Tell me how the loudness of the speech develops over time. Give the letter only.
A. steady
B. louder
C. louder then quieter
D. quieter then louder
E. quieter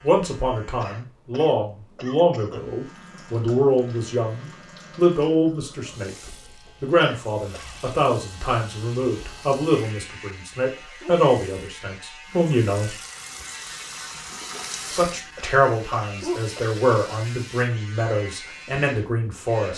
A.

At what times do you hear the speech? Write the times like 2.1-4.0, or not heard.
0.0-12.9, 14.9-19.7.